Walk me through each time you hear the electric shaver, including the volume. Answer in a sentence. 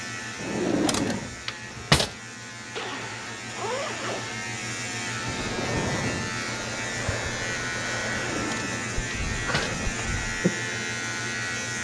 The electric shaver can be heard from 0.0 to 11.7 s, getting louder.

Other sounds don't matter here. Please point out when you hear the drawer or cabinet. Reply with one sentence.
The drawer or cabinet can be heard from 0.3 to 2.1 s and from 8.0 to 9.8 s.